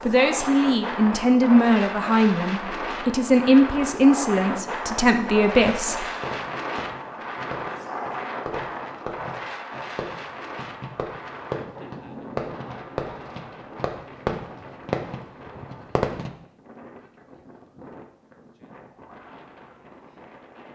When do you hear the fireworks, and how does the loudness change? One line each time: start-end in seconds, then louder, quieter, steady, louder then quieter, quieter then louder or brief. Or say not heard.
6.2-16.3 louder.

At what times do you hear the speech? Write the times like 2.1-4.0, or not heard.
0.1-6.0.